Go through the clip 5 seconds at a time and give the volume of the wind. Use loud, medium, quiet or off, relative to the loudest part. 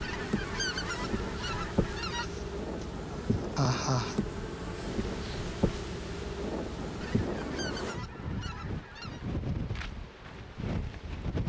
medium, loud, loud.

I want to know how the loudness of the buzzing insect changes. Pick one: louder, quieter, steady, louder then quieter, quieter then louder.
quieter.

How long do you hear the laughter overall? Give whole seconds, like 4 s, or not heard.
2 s.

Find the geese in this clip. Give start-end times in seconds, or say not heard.
0.0-2.3, 7.0-9.2.